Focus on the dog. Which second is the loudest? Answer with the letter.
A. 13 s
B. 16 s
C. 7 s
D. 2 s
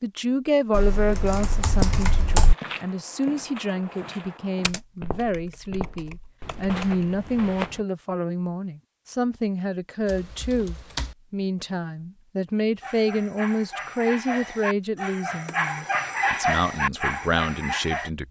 B.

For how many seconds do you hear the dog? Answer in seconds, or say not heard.
5 s.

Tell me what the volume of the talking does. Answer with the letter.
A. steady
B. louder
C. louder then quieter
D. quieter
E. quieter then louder
A.